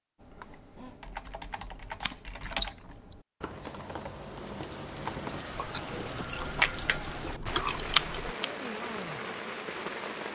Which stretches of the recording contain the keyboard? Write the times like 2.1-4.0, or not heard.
0.2-8.3.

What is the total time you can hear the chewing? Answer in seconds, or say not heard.
4 s.